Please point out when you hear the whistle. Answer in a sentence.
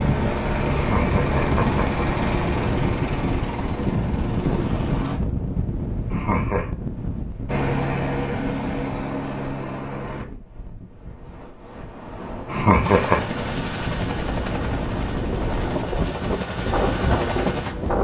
You can't hear the whistle here.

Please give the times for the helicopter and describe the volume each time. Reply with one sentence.
You can hear the helicopter from 0.0 to 5.2 s, getting quieter; briefly from 7.5 to 10.2 s; and from 12.8 to 17.9 s, getting quieter then louder.